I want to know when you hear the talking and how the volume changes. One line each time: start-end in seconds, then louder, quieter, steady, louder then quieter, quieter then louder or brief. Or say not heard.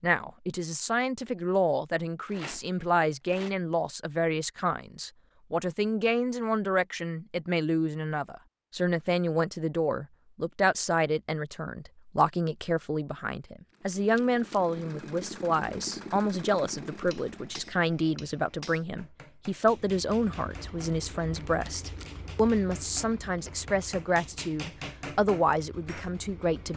0.0-26.7 steady.